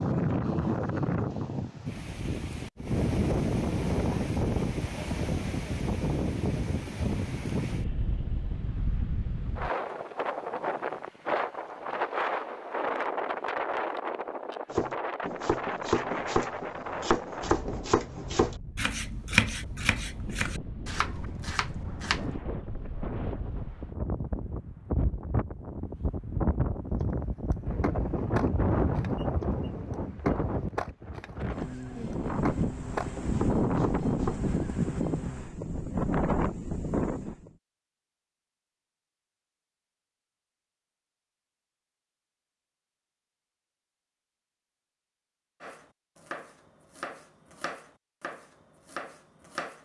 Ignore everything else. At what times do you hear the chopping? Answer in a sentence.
The chopping can be heard from 14.7 to 22.4 s, from 27.0 to 34.5 s and from 45.6 to 49.8 s.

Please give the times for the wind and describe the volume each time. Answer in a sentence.
You can hear the wind from 0.0 to 37.5 s, getting quieter then louder.